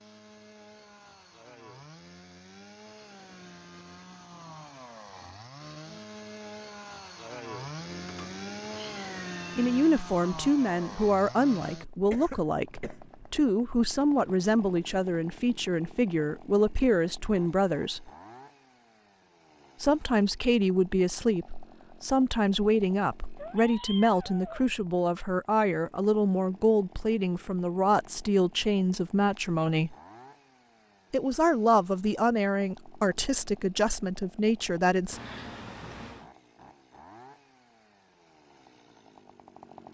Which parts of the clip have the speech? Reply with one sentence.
The speech can be heard from 9.6 to 18.1 s, from 19.8 to 29.9 s and from 31.1 to 35.2 s.